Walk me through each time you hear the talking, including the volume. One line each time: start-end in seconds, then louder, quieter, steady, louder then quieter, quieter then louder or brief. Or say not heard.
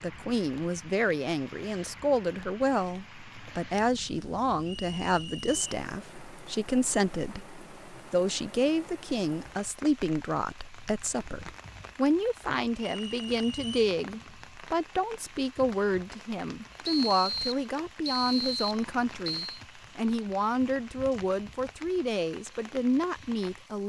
0.0-23.8 steady.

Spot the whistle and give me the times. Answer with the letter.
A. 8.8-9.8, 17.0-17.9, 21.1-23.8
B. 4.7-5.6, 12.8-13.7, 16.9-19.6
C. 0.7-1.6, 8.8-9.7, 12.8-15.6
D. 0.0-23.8
B.